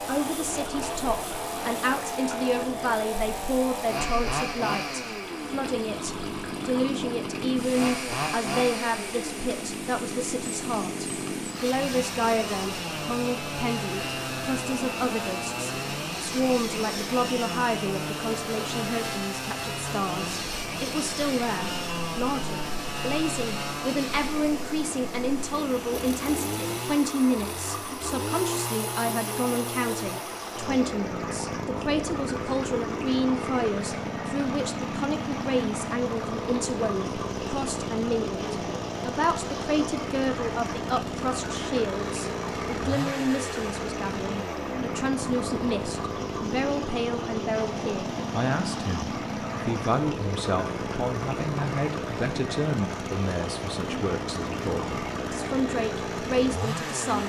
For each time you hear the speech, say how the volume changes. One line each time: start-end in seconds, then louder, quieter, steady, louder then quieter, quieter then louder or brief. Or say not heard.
0.1-57.2 steady.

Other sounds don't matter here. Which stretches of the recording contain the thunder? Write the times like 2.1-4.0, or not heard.
not heard.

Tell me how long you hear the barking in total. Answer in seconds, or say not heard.
not heard.